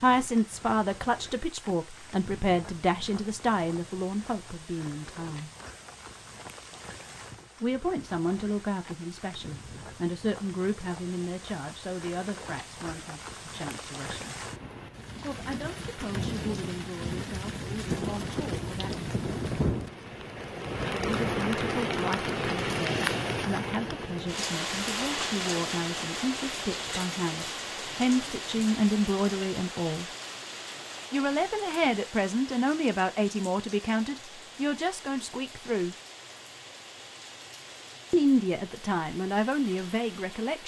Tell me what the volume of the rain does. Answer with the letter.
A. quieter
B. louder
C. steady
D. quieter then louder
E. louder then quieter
E.